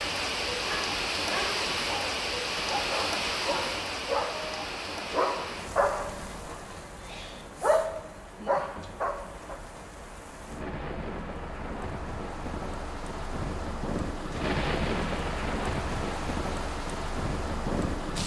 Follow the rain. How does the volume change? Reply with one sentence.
The volume of the rain goes down, then up.